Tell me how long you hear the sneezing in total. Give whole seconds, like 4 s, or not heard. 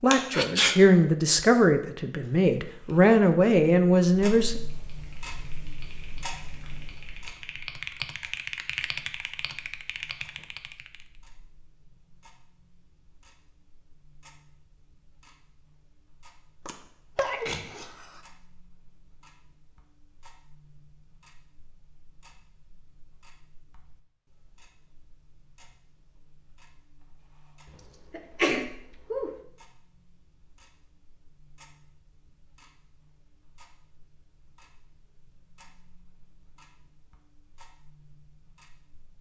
3 s.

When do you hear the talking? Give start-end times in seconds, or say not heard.
0.0-4.6.